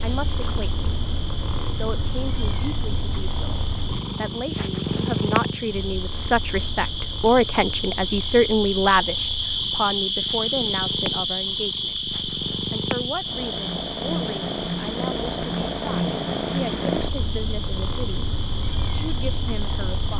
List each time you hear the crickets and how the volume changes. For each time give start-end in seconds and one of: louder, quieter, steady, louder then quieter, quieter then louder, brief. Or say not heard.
0.0-20.1 louder then quieter.